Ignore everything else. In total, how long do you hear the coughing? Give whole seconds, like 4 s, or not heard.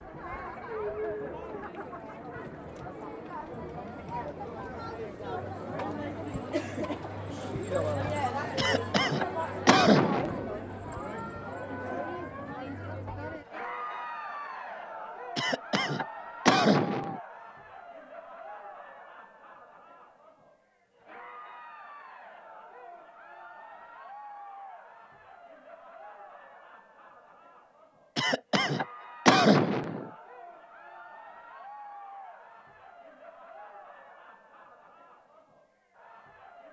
6 s.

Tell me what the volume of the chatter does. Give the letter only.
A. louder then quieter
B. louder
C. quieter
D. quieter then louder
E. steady
C.